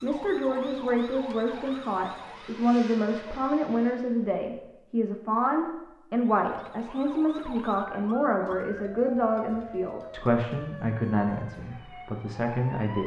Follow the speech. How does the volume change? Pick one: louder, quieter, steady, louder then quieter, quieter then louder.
steady.